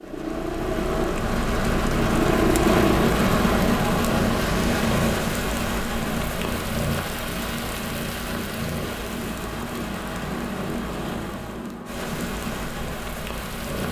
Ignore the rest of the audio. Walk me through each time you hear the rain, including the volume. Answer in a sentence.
The rain can be heard from 0.0 to 13.8 s, getting quieter.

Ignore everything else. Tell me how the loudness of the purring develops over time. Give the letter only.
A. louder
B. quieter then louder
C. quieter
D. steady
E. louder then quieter
C.